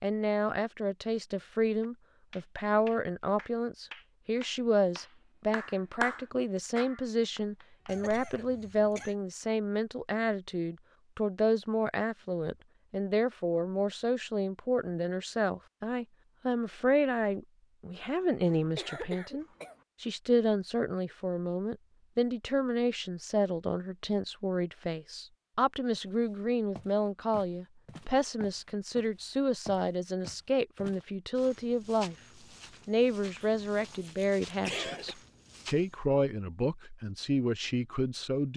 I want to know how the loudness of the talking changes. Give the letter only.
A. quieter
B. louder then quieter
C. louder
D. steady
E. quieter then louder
D.